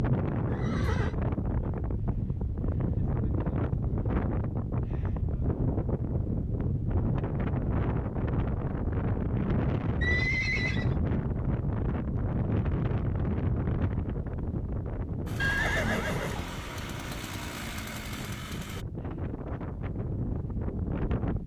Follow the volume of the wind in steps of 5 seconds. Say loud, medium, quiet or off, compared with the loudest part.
loud, loud, loud, medium, loud.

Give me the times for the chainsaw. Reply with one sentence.
The chainsaw can be heard from 15.2 to 18.9 s.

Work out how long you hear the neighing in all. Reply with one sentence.
The neighing can be heard for 3 seconds in total.